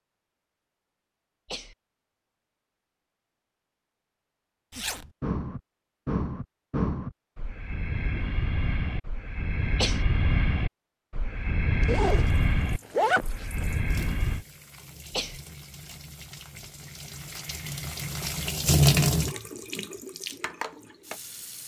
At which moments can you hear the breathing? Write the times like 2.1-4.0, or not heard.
4.8-14.4.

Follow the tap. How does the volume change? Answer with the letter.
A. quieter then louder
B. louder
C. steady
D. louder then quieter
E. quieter
D.